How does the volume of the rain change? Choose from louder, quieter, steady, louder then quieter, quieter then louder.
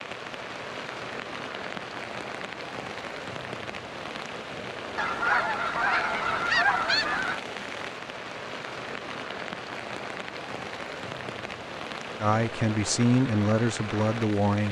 steady.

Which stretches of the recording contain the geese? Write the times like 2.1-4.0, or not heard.
5.0-7.4.